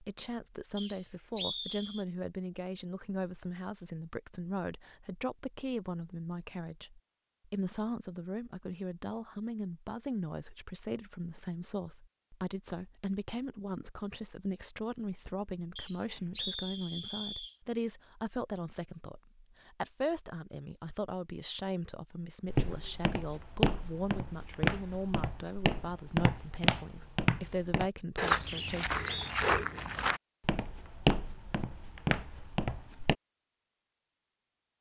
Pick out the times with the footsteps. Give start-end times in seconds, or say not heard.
22.4-33.1.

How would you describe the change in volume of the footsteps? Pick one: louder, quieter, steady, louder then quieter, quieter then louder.
steady.